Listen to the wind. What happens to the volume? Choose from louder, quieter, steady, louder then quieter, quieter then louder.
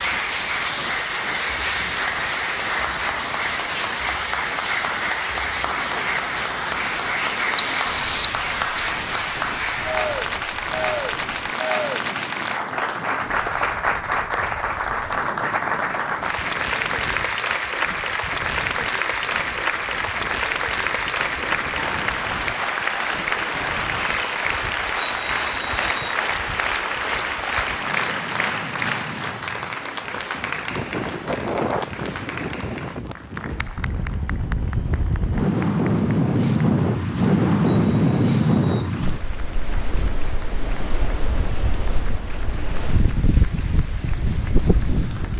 louder.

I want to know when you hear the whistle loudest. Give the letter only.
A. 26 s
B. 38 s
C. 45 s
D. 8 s
D.